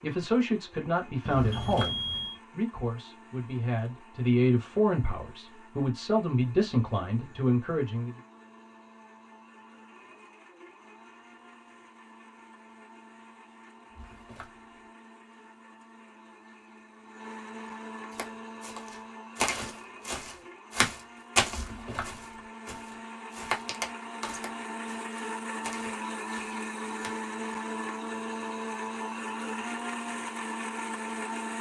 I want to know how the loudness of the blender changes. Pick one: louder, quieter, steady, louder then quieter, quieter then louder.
louder.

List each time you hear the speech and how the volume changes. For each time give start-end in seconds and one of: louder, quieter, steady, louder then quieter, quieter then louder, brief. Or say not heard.
0.0-8.1 quieter then louder.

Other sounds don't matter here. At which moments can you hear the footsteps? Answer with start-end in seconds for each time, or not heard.
18.1-27.1.